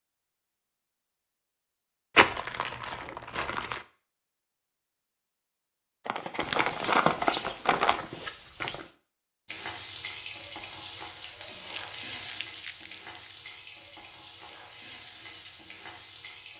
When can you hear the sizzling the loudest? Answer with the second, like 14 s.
10 s.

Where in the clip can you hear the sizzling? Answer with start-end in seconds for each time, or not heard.
9.4-16.5.